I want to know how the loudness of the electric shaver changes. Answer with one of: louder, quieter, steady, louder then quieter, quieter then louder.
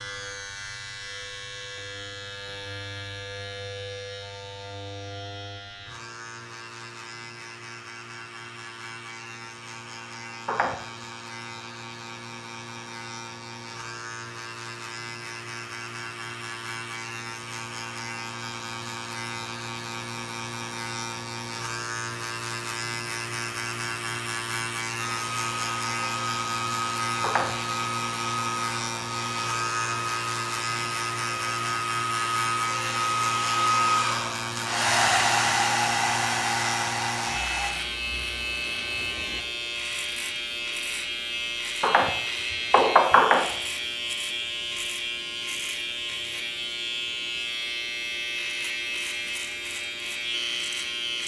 louder.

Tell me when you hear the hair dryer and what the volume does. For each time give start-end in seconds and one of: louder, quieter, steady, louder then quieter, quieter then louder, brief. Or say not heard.
25.1-37.8 louder.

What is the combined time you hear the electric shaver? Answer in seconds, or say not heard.
51 s.